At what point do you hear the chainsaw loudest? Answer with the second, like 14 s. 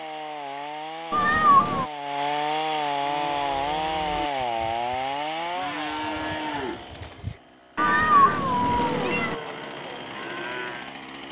3 s.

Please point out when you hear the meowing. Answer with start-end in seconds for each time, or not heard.
1.1-1.9, 7.8-9.3.